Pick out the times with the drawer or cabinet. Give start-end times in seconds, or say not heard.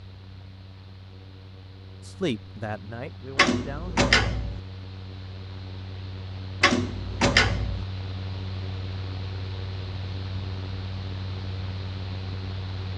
3.4-4.6, 6.6-7.8.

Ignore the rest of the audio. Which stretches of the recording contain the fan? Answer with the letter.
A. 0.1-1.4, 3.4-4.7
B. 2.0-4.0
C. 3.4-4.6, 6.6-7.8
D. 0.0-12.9
D.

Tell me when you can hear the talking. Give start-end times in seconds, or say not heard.
2.0-4.0.